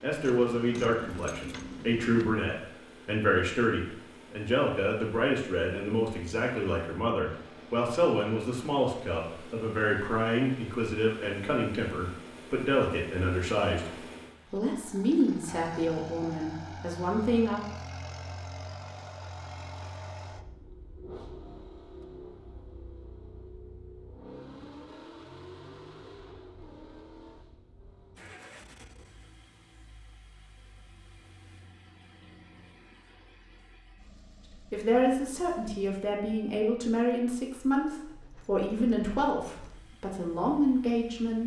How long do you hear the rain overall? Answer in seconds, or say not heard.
not heard.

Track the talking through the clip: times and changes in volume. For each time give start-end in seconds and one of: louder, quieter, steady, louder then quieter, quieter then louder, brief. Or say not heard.
0.0-17.6 steady
34.5-41.4 steady.